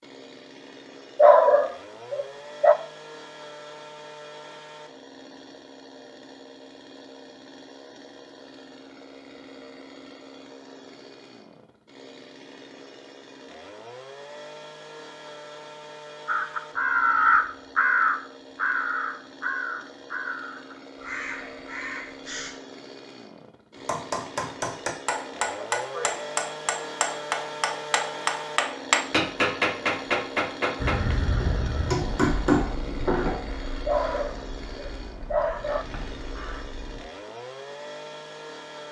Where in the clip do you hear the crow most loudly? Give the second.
17 s.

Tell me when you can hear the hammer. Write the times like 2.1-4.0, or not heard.
23.8-33.4.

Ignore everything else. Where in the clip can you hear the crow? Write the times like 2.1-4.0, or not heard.
16.2-22.5, 30.8-37.0.